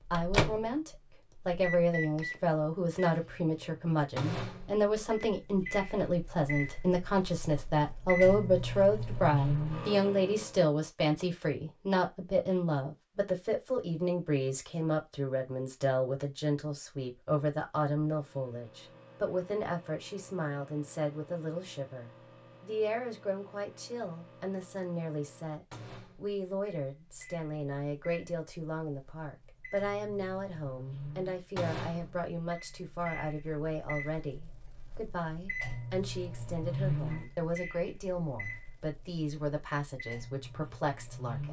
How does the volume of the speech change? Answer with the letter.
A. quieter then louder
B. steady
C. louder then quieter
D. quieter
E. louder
D.